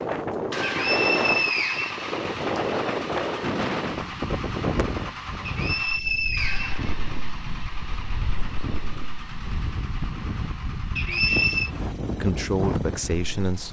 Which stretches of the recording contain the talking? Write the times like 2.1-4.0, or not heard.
12.1-13.6.